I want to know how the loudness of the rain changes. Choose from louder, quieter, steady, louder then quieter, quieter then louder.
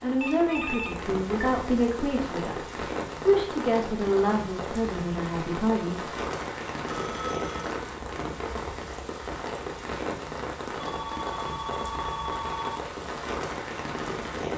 steady.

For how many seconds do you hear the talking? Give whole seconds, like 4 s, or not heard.
6 s.